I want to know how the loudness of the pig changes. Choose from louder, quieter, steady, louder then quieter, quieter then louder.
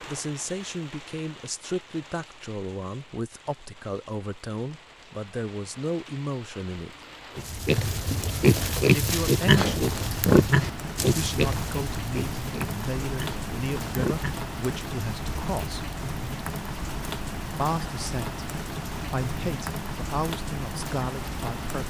quieter.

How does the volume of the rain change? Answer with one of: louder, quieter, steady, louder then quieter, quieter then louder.
louder.